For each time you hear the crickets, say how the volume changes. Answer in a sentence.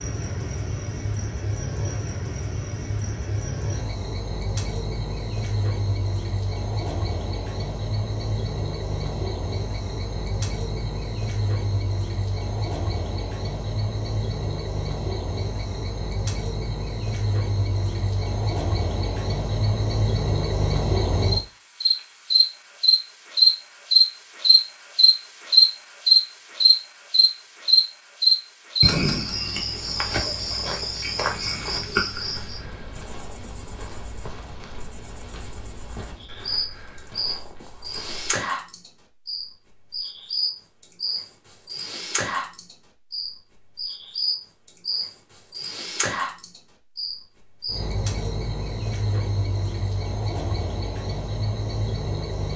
You can hear the crickets from 0.0 to 52.5 s, getting louder then quieter.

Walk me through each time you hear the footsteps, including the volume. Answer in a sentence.
The footsteps can be heard from 29.8 to 38.3 s, getting quieter.